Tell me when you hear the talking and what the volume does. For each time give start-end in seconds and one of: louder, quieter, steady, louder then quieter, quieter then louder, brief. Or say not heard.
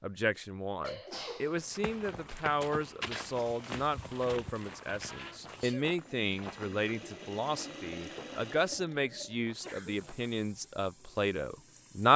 0.0-12.1 steady.